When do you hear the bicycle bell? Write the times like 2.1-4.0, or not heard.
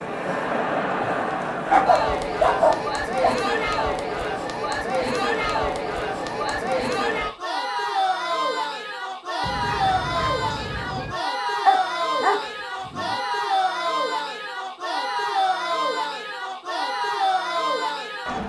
not heard.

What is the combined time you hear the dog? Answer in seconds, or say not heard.
3 s.